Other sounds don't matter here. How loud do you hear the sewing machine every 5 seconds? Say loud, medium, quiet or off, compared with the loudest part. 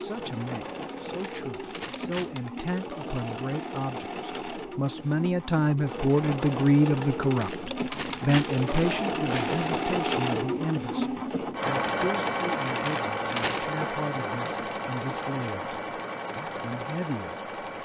medium, loud, loud, medium.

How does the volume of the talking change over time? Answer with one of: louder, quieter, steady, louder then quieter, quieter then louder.
louder then quieter.